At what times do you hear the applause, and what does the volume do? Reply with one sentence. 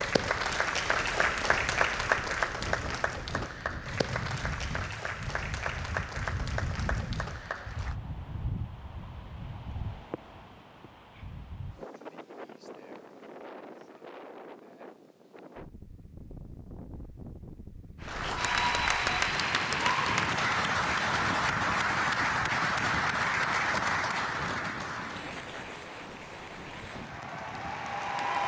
You can hear the applause from 0.0 to 8.0 s, getting quieter; and from 18.0 to 28.4 s, getting quieter.